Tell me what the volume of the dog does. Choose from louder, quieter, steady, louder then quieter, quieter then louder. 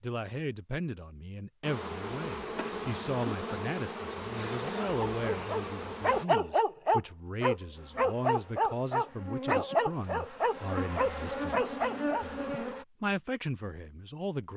steady.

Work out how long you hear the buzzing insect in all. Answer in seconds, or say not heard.
10 s.